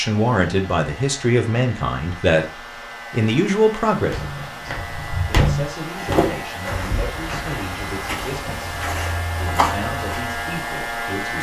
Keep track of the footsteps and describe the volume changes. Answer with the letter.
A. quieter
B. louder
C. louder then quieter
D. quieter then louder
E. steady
A.